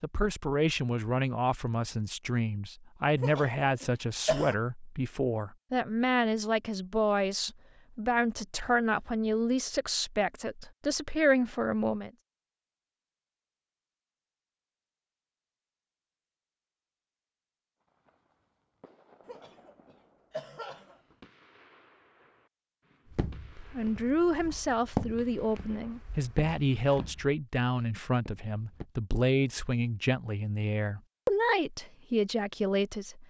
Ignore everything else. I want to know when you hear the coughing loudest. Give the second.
4 s.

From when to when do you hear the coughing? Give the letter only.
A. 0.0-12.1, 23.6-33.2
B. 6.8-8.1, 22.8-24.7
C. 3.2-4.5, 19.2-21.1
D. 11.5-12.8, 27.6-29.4
C.